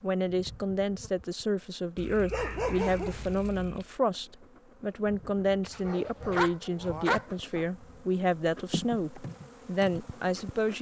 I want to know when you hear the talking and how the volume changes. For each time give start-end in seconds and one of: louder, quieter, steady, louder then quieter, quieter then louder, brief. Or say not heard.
0.0-10.7 steady.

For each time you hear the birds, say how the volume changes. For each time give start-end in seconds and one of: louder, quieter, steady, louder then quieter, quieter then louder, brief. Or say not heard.
not heard.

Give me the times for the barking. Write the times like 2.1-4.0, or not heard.
1.9-3.9, 5.6-7.7.